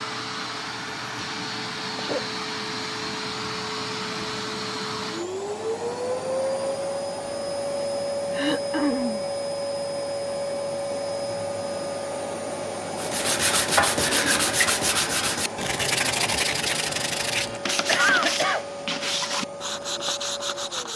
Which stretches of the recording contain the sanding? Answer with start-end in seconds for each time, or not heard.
12.9-20.9.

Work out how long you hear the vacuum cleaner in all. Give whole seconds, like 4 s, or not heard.
21 s.